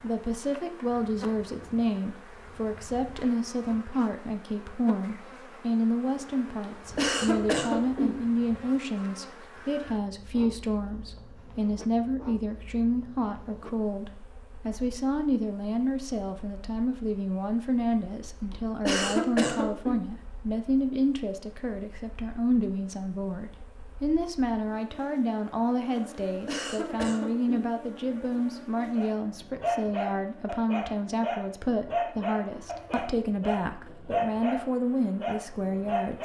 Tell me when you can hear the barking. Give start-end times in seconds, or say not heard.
28.9-36.1.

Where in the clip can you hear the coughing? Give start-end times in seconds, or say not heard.
7.0-8.2, 18.5-20.0, 26.4-27.6.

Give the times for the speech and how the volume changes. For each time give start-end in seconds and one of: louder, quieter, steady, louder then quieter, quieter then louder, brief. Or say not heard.
0.0-36.1 steady.